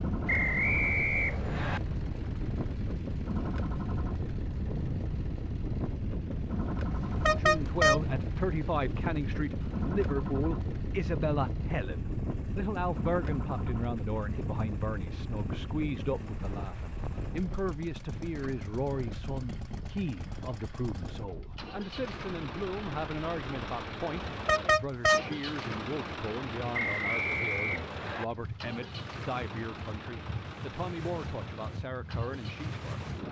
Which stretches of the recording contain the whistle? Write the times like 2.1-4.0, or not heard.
0.2-1.8, 26.7-28.2.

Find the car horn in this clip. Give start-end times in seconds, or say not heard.
7.0-8.0, 24.2-25.2.